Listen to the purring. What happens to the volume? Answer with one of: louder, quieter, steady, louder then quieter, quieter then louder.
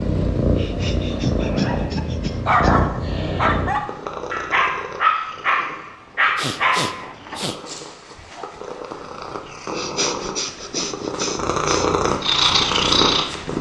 quieter then louder.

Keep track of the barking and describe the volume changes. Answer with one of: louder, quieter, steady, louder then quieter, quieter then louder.
quieter.